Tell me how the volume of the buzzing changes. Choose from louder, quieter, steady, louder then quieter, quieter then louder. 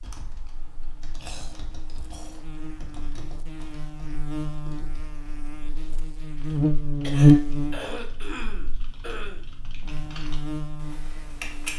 louder then quieter.